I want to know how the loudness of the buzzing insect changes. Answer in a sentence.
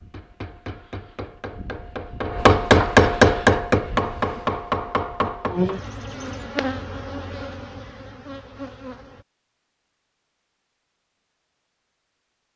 The volume of the buzzing insect goes up, then down.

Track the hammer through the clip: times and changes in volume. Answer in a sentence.
You can hear the hammer from 0.0 to 5.8 s, getting louder then quieter.